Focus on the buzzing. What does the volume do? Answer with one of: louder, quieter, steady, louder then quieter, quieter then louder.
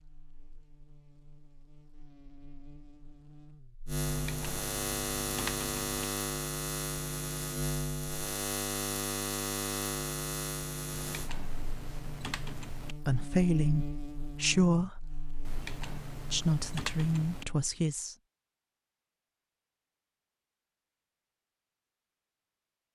louder then quieter.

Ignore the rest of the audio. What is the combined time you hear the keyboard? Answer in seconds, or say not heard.
6 s.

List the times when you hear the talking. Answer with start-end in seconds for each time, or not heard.
13.1-15.0, 16.3-18.1.